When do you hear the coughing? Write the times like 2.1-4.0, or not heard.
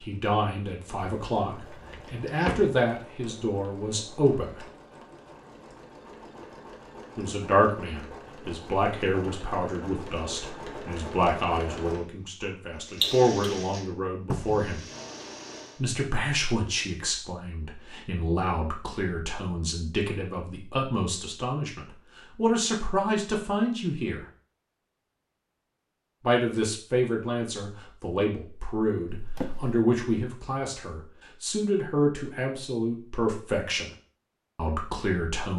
13.0-13.5.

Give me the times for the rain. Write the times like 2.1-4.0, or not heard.
not heard.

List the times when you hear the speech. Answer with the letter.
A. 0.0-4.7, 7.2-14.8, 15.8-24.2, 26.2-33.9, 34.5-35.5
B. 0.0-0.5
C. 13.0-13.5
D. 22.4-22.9
A.